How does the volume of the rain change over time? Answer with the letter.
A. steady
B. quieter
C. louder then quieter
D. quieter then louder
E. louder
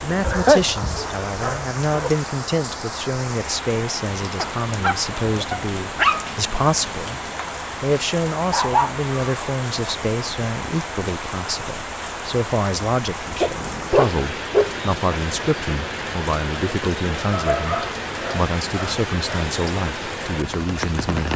A.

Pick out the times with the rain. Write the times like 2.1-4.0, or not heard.
0.0-21.3.